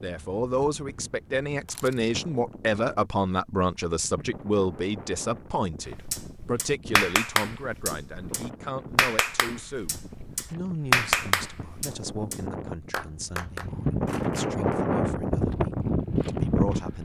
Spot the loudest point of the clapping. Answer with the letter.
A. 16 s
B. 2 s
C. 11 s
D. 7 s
C.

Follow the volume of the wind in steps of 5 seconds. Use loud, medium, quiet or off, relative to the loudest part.
quiet, quiet, medium, loud.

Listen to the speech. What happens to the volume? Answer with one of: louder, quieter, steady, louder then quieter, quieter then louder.
quieter.